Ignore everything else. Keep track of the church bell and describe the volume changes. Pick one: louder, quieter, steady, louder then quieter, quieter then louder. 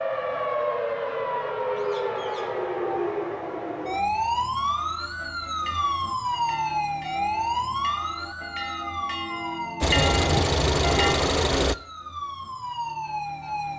louder.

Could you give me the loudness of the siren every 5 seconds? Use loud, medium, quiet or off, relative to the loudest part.
loud, loud, medium.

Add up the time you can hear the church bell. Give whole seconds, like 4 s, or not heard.
6 s.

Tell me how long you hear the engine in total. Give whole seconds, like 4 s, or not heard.
2 s.